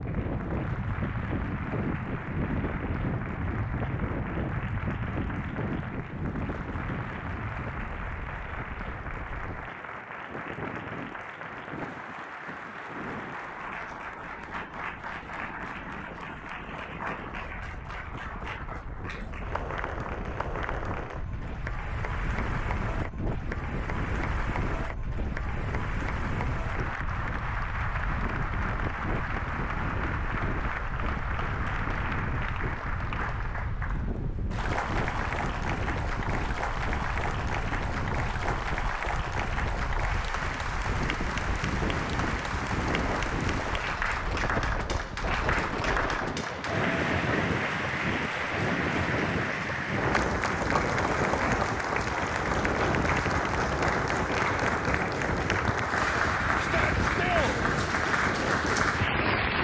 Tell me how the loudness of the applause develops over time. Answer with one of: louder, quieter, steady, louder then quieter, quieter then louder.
louder.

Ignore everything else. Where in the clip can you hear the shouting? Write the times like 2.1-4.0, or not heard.
56.5-57.6.